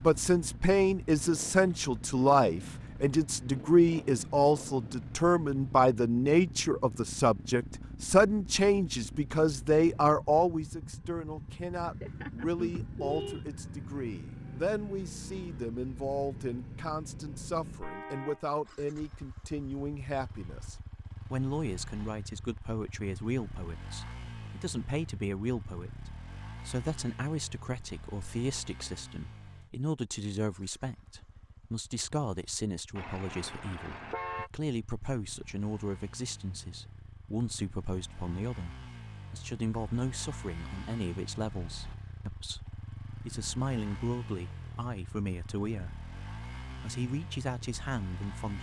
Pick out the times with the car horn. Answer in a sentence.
The car horn can be heard from 11.8 to 13.4 s, from 17.8 to 18.4 s and from 33.0 to 34.5 s.